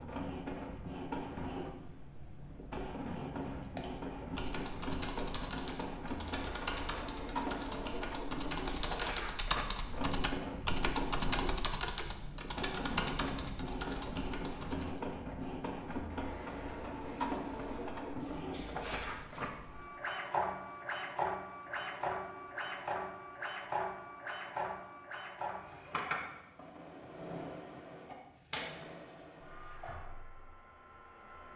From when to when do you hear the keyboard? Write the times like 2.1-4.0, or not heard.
3.6-15.0.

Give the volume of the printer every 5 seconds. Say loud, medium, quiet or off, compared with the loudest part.
loud, loud, loud, loud, loud, medium, quiet.